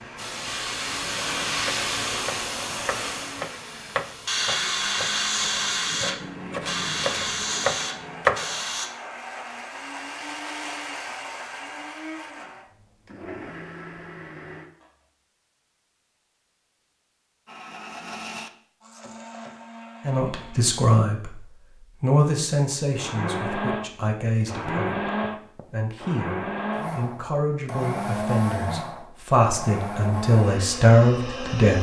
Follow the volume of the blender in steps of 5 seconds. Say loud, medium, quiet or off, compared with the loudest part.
quiet, medium, medium, medium, loud, loud, loud.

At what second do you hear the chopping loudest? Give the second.
8 s.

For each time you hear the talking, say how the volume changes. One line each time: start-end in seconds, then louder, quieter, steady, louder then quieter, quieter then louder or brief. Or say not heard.
20.1-21.4 brief
22.0-31.7 louder.